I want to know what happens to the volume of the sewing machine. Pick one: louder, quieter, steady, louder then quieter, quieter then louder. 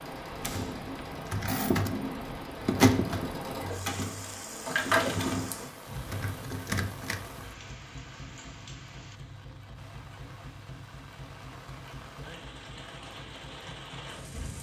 louder then quieter.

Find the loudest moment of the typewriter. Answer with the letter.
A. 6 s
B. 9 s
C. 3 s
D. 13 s
C.